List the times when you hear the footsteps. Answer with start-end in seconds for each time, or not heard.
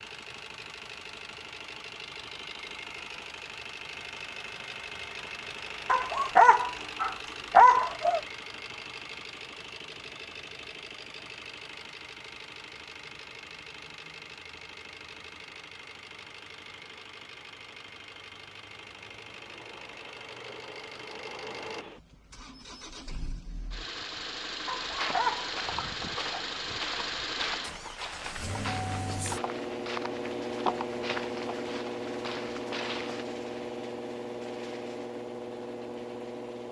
24.8-33.2.